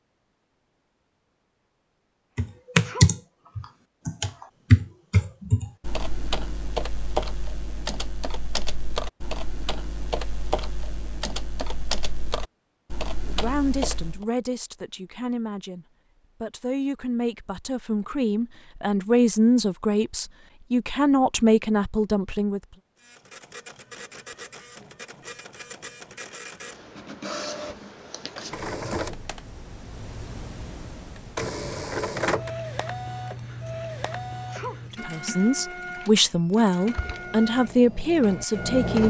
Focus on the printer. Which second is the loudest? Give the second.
32 s.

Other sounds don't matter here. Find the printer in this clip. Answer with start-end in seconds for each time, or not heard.
22.9-39.0.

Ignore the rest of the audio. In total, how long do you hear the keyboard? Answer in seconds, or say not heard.
14 s.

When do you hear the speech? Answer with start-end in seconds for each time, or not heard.
13.2-22.6, 34.9-39.0.